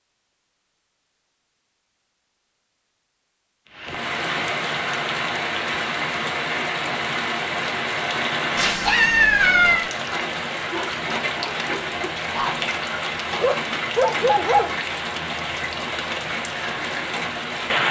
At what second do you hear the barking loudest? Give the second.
14 s.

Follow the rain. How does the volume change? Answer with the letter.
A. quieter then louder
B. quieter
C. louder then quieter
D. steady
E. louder
D.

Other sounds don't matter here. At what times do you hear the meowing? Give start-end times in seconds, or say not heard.
8.6-9.9.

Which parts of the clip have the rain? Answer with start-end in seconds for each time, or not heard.
3.7-17.8.